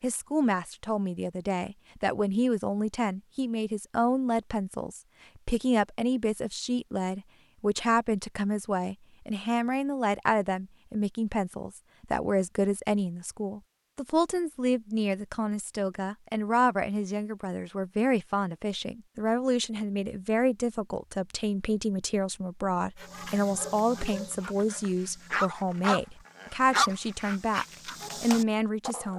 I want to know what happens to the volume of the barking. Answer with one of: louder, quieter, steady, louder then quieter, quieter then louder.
louder then quieter.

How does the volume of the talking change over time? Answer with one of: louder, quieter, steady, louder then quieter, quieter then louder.
steady.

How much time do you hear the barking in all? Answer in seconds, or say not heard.
6 s.